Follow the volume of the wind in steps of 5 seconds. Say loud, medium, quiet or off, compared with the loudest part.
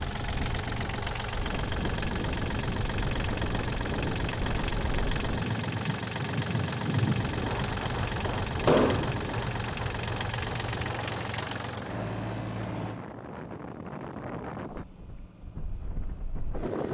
loud, loud, medium, medium.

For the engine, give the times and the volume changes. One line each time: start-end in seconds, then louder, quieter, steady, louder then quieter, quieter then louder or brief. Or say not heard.
0.0-16.6 quieter.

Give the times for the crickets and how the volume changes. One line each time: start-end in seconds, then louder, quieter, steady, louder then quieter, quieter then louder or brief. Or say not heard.
not heard.